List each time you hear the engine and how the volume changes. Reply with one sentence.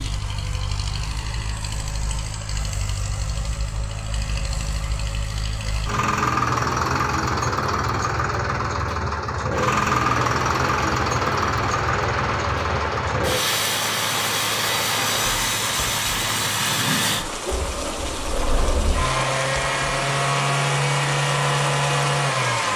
You can hear the engine from 0.0 to 22.7 s, getting louder.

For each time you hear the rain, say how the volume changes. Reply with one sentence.
You can hear the rain from 9.6 to 22.7 s, at a steady volume.